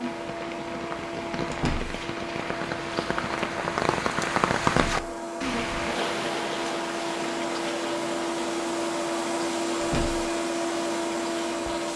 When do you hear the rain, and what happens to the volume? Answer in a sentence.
You can hear the rain from 0.0 to 11.9 s, getting louder then quieter.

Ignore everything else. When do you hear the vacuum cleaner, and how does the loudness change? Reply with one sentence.
You can hear the vacuum cleaner from 0.0 to 11.9 s, getting louder.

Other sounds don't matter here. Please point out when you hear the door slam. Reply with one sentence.
The door slam can be heard from 1.5 to 2.0 s, from 4.6 to 5.0 s and from 9.8 to 10.3 s.